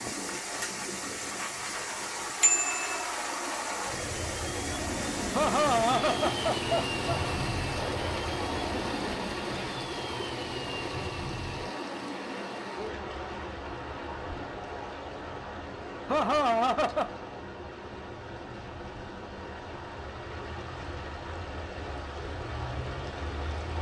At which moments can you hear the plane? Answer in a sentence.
The plane can be heard from 0.0 to 23.7 s.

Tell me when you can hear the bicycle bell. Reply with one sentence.
You can hear the bicycle bell from 2.4 to 3.0 s.